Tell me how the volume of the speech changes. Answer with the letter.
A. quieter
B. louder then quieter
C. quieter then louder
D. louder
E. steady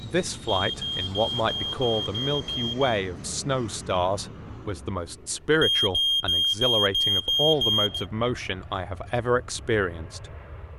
E.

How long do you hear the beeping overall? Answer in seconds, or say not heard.
5 s.